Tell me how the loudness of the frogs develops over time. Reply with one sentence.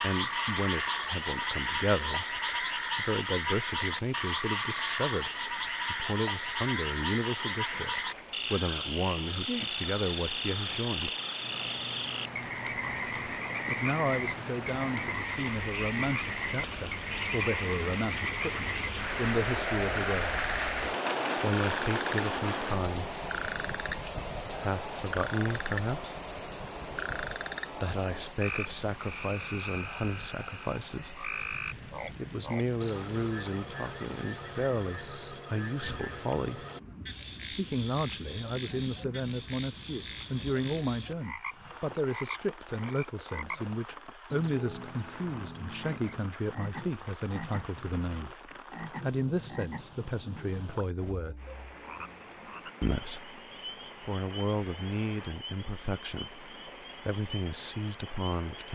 The loudness of the frogs goes down.